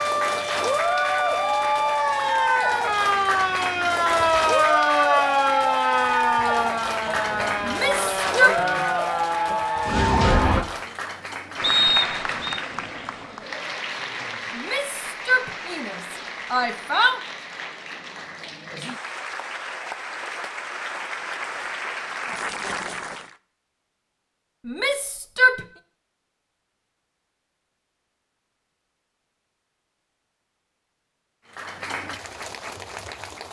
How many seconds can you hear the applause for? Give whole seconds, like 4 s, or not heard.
25 s.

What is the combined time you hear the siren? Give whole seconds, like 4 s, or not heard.
11 s.